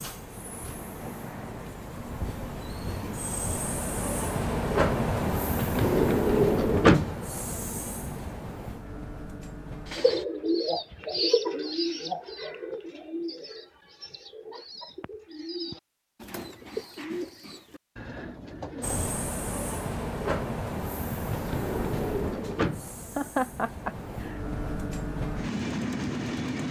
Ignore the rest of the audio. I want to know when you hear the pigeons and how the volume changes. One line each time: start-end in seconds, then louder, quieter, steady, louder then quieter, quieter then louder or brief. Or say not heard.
9.9-19.1 quieter then louder.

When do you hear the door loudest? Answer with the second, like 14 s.
7 s.